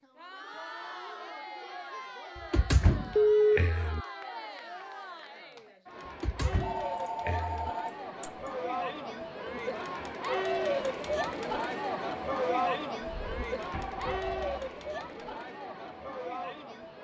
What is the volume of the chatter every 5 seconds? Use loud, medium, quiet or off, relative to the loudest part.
medium, medium, loud, medium.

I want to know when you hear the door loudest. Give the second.
3 s.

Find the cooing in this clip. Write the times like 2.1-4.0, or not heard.
not heard.